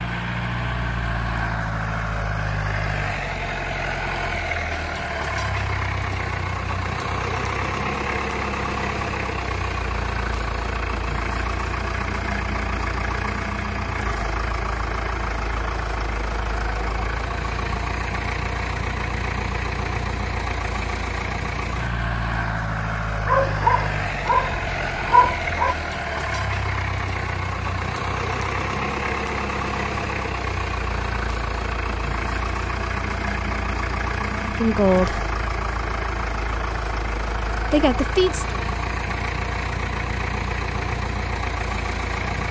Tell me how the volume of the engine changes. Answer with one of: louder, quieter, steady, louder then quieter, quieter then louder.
steady.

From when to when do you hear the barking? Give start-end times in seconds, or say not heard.
23.2-25.8.